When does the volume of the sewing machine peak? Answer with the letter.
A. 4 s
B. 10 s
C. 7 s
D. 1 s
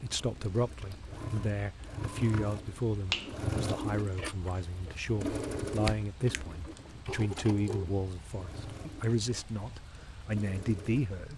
A.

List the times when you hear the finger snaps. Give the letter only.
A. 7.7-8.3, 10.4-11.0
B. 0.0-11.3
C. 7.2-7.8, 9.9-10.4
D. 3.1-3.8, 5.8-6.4
D.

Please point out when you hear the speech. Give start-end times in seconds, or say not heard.
0.0-11.3.